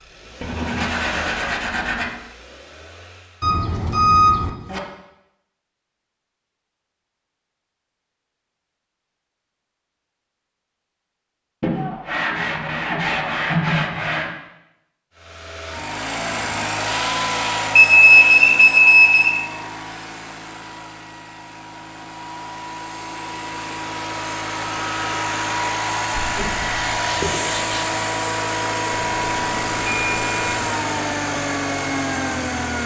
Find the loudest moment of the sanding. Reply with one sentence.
The volume of the sanding peaks at 14 seconds.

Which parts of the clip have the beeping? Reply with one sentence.
The beeping can be heard from 3.4 to 4.8 s, from 17.8 to 19.4 s and from 28.9 to 30.6 s.